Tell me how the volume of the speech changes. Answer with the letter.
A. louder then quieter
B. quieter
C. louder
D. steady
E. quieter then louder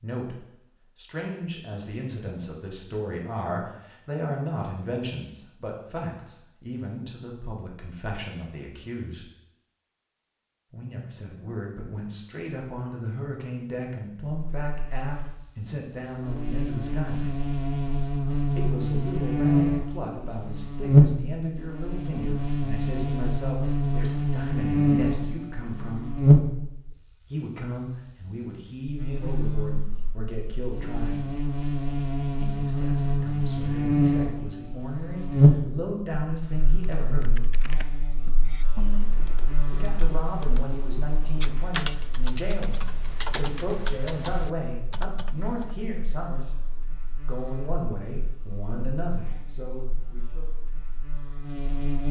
D.